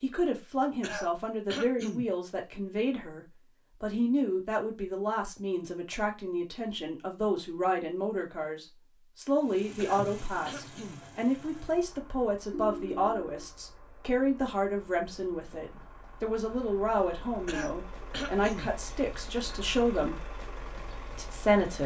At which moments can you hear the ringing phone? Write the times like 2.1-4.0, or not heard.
12.5-13.5.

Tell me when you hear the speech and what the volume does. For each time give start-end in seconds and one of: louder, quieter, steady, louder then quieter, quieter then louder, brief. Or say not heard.
0.0-20.2 steady
21.1-21.8 brief.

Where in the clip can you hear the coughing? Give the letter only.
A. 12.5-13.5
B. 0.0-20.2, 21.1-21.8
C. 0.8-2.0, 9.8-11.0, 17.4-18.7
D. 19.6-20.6
C.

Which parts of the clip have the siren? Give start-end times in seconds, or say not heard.
not heard.